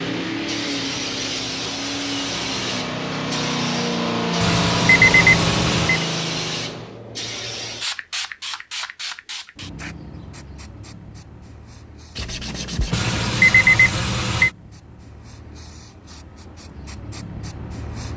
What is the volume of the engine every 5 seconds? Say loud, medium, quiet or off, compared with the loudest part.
loud, loud, off, off.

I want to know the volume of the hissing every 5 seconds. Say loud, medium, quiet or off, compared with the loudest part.
loud, loud, quiet, medium.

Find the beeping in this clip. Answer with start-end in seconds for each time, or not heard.
4.4-6.0, 12.9-14.5.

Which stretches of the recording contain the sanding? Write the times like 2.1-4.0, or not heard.
12.2-13.6.